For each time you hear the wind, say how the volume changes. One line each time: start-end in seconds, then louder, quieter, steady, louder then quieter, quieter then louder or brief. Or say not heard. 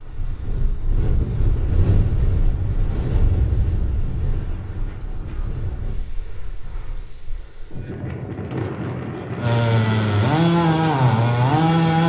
0.0-12.0 quieter then louder.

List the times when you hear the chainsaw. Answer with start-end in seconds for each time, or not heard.
9.3-12.0.